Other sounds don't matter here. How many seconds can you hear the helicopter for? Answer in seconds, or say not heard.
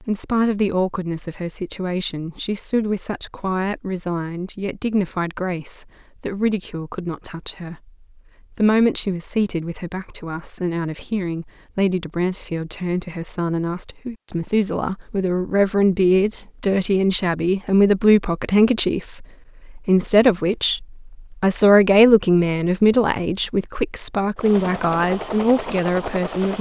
2 s.